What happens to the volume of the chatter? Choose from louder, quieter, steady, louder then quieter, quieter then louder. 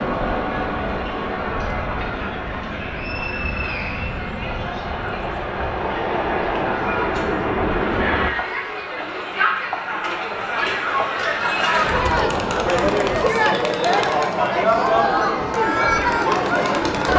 louder.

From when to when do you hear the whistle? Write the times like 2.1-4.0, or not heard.
2.9-4.3.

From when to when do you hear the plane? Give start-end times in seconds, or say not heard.
0.0-8.3.